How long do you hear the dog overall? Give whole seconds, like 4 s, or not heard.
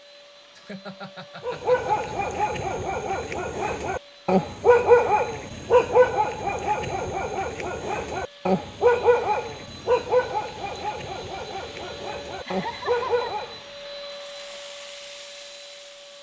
12 s.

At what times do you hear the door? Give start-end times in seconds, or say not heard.
not heard.